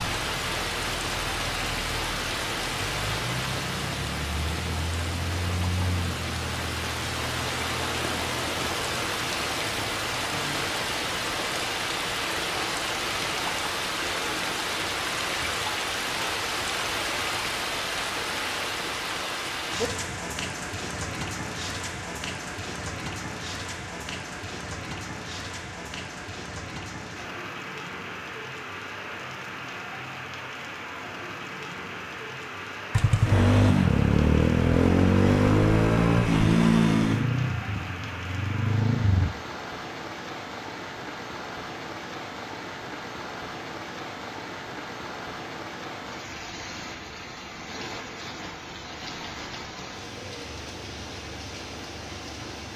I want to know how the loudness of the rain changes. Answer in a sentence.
The loudness of the rain goes down.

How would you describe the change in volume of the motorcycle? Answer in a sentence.
The volume of the motorcycle goes down.